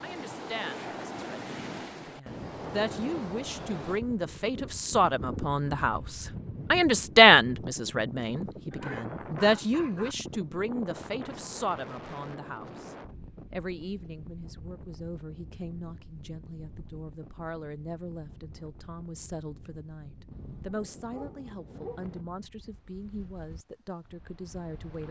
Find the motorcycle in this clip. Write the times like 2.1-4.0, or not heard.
not heard.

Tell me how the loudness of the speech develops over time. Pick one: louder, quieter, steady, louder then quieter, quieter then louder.
louder then quieter.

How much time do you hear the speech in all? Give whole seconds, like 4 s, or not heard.
25 s.